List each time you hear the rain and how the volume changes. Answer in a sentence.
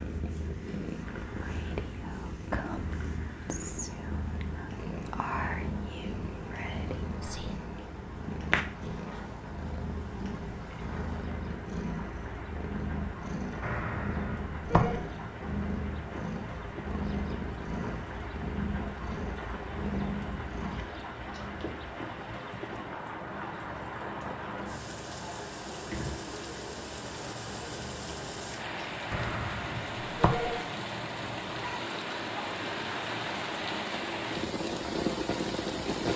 You can hear the rain from 0.0 to 36.1 s, getting louder.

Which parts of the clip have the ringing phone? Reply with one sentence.
The ringing phone can be heard from 13.6 to 15.1 s and from 29.1 to 30.6 s.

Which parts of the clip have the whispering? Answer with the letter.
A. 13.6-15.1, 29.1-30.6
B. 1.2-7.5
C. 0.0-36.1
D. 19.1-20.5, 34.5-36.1
B.